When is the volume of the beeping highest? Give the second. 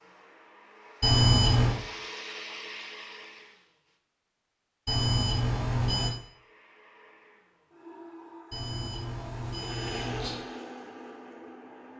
1 s.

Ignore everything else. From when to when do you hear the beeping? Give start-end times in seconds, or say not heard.
1.0-1.8, 4.8-6.2, 8.5-10.3.